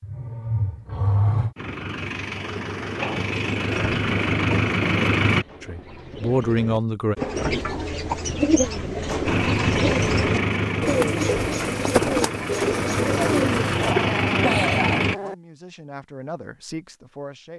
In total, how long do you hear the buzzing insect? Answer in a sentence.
You can't hear the buzzing insect here.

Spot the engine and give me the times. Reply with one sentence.
The engine can be heard from 1.6 to 5.5 s and from 9.2 to 15.2 s.